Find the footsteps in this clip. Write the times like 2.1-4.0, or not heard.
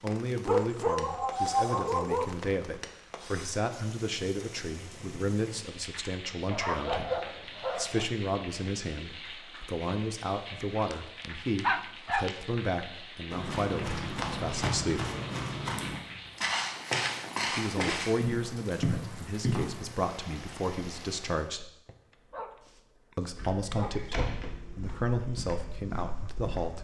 13.3-19.7, 23.4-26.8.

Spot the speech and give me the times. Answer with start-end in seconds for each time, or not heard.
0.0-15.1, 17.5-21.7, 23.1-26.8.